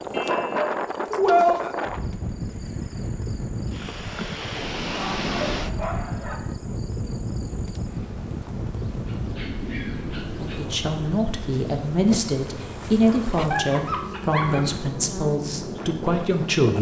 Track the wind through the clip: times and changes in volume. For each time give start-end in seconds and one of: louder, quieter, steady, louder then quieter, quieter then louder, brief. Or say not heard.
0.0-16.7 quieter.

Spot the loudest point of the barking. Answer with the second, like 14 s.
1 s.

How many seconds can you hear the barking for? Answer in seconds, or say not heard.
6 s.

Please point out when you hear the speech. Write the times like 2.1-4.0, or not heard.
10.4-16.7.